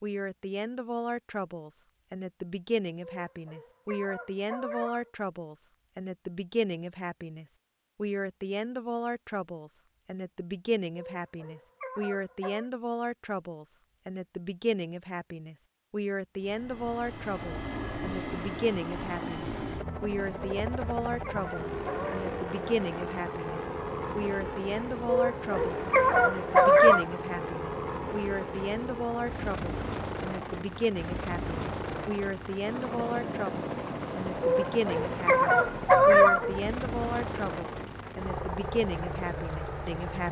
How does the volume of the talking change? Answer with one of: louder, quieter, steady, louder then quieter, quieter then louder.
steady.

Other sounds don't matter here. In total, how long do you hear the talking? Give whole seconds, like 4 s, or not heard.
40 s.